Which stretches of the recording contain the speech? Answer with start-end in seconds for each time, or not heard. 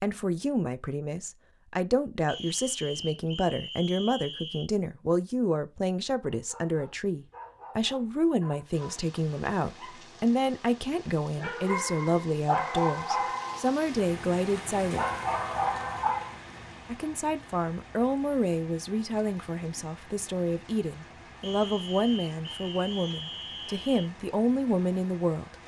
0.0-15.1, 16.9-25.6.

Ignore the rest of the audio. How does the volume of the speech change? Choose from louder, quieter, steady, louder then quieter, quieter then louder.
steady.